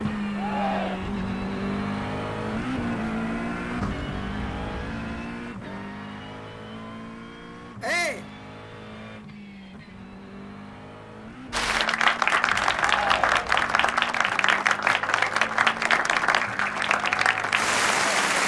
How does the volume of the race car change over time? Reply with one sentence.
The volume of the race car goes down.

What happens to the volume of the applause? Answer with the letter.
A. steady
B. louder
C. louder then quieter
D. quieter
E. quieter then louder
A.